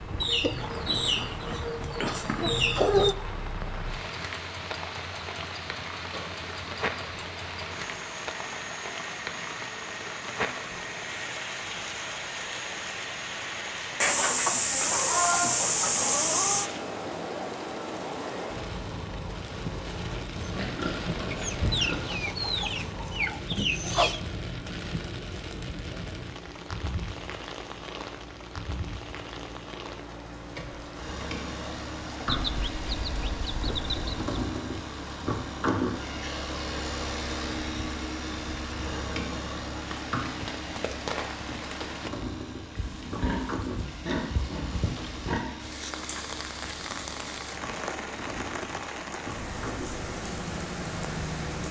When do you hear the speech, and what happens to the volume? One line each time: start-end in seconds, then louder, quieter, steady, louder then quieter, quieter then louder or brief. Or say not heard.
not heard.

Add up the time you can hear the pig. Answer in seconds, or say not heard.
4 s.